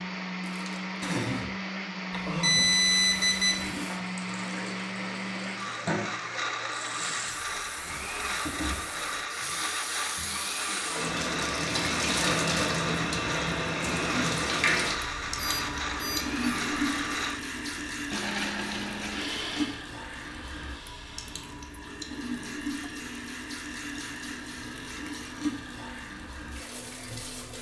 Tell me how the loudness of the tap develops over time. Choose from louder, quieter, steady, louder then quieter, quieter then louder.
louder then quieter.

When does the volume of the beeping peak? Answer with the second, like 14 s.
3 s.